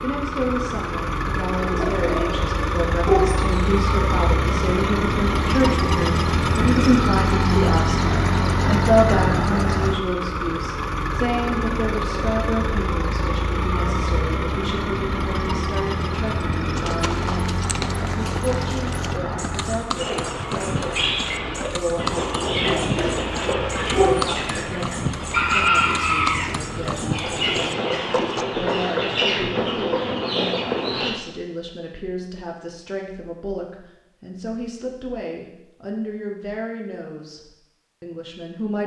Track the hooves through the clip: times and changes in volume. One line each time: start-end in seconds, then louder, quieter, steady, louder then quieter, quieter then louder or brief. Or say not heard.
16.8-28.4 steady.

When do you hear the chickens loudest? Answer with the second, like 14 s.
26 s.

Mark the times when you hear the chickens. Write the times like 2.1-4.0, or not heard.
19.9-31.1.